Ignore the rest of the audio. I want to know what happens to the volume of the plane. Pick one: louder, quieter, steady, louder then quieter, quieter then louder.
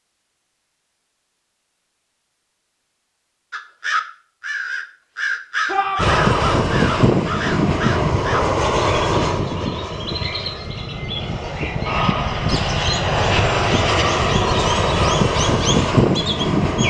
quieter then louder.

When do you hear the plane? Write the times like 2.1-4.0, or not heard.
6.0-16.8.